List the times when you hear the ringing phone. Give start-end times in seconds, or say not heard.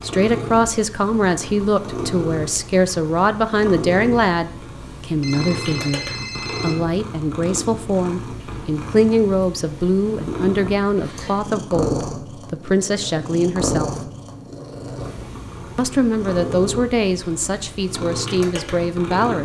5.2-6.8.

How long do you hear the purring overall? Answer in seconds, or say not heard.
19 s.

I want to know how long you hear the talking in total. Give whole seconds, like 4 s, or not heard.
18 s.